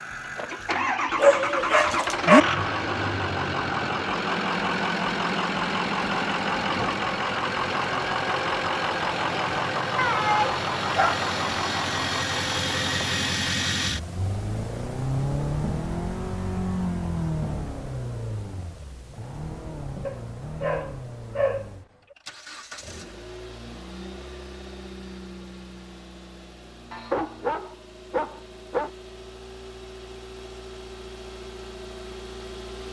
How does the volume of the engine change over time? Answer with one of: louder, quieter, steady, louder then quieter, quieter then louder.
quieter.